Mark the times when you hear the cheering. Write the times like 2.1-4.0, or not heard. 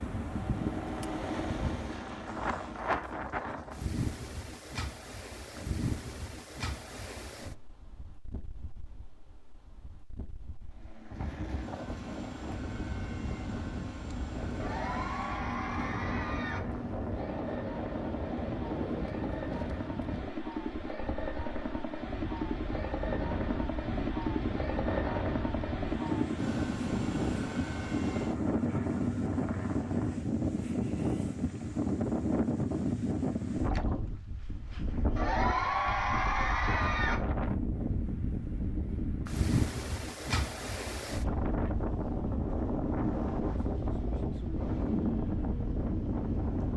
14.6-16.6, 35.1-37.1.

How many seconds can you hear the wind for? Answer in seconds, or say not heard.
47 s.